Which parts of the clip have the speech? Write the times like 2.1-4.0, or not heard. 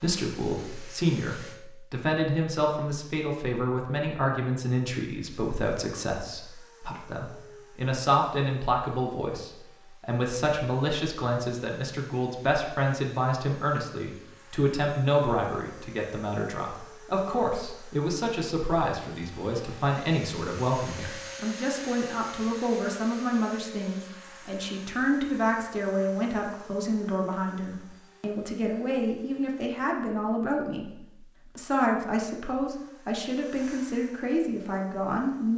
0.0-30.9, 31.6-35.5.